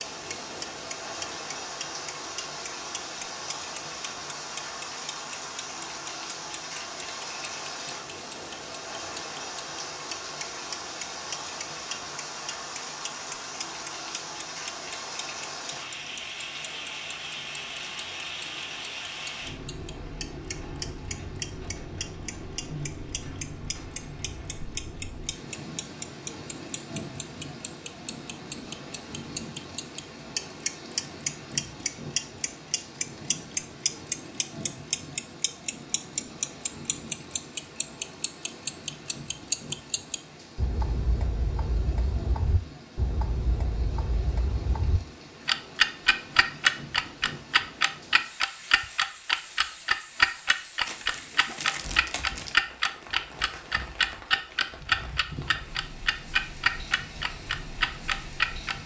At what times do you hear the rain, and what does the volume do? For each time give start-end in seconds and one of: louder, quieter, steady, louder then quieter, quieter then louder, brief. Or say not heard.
0.0-58.8 quieter.